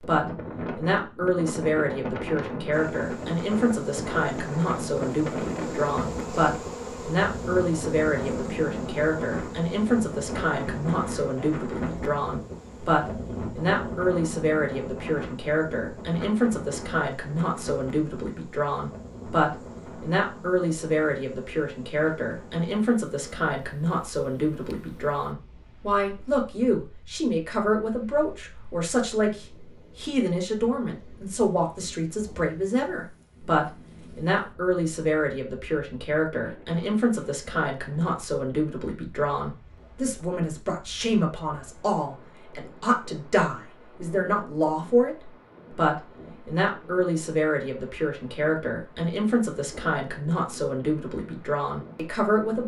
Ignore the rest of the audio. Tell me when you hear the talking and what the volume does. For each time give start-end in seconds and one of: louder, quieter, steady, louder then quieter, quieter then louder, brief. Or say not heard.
0.0-52.6 steady.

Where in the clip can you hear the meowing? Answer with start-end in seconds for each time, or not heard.
not heard.